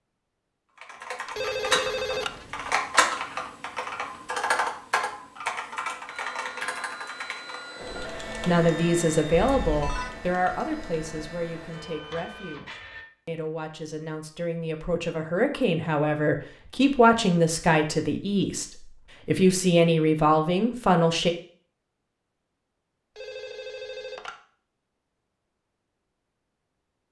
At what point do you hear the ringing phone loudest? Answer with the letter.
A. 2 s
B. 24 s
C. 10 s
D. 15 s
A.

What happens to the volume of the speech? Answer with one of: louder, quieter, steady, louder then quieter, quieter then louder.
quieter then louder.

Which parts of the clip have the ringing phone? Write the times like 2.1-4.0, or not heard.
1.2-2.8, 9.3-10.2, 23.1-24.4.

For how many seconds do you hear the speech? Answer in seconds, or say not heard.
13 s.